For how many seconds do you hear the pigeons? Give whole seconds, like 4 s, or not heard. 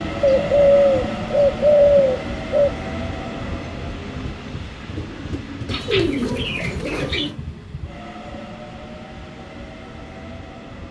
4 s.